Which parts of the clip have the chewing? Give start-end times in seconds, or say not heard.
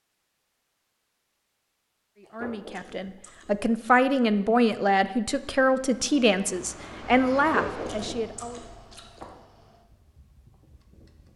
2.2-3.7, 7.4-9.2.